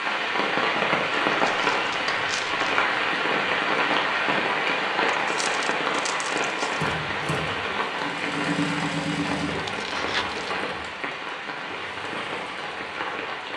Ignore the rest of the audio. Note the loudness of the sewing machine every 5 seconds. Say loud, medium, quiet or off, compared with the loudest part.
off, loud, medium.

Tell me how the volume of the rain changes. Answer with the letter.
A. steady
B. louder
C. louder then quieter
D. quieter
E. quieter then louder
D.